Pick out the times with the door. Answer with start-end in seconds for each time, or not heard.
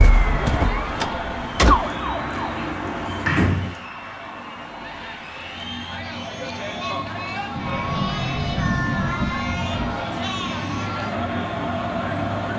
1.7-3.7, 7.5-10.0.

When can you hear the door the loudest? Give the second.
3 s.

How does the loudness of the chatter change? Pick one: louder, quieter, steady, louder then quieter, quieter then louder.
louder.